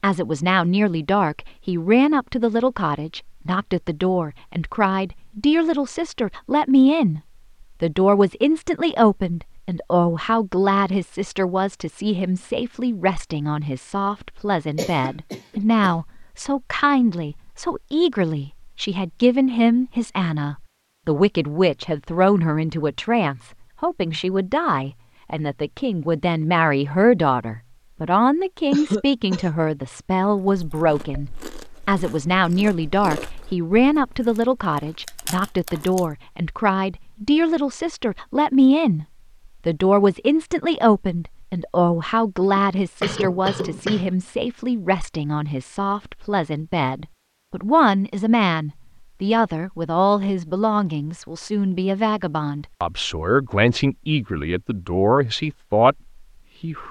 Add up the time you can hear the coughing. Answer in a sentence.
The coughing can be heard for 4 seconds in total.